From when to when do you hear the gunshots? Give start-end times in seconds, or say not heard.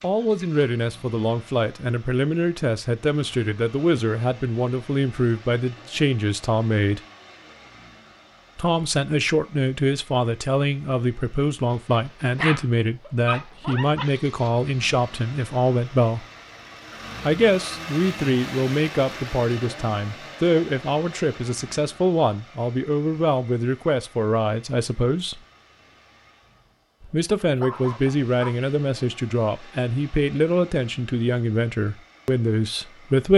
not heard.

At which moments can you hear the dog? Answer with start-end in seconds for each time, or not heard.
11.7-14.2, 27.0-28.3.